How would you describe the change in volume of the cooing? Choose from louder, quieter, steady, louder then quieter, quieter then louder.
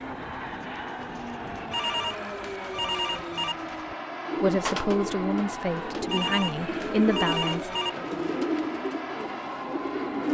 louder.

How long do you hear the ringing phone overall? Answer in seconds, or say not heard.
4 s.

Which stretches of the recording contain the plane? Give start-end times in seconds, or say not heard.
0.0-10.2.